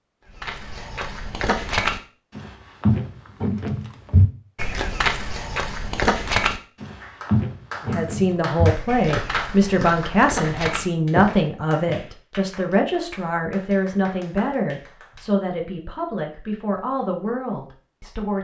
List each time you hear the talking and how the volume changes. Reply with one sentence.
You can hear the talking from 7.8 to 18.3 s, getting quieter.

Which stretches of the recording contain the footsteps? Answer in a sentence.
You can hear the footsteps from 0.3 to 11.9 s.